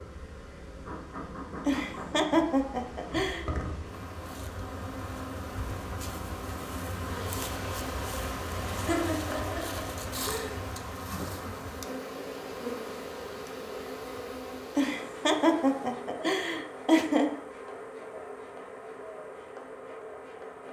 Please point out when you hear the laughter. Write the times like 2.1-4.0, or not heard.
1.6-3.5, 8.7-10.6, 14.8-17.4.